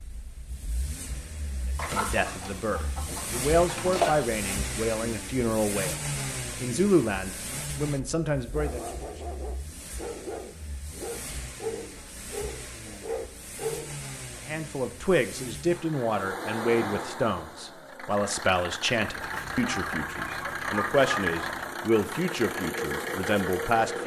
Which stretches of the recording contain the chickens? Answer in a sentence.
You can hear the chickens from 1.8 to 4.3 s and from 19.2 to 21.7 s.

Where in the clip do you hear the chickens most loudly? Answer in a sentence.
The volume of the chickens peaks at 4 seconds.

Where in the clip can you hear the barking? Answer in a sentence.
You can hear the barking from 8.5 to 14.0 s.